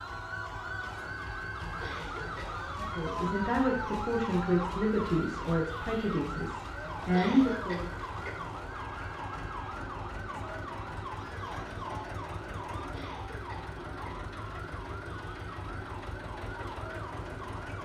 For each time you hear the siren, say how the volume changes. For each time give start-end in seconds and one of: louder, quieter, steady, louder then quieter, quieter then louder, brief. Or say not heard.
0.0-17.7 quieter.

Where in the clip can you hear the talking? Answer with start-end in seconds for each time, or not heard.
2.8-7.9.